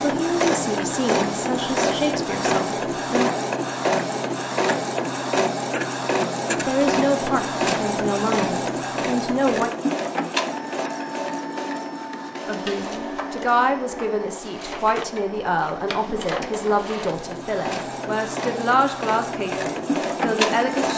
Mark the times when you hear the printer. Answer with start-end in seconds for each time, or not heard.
0.0-20.9.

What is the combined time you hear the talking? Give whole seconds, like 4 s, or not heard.
15 s.